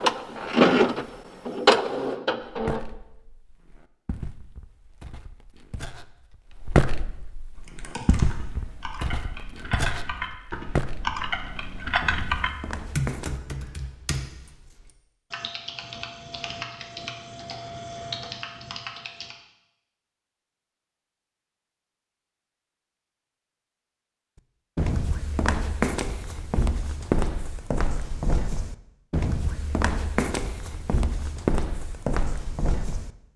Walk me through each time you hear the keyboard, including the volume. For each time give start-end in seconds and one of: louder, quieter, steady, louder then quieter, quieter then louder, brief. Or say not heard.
7.5-19.4 louder then quieter.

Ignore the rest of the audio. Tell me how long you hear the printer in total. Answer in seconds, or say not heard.
3 s.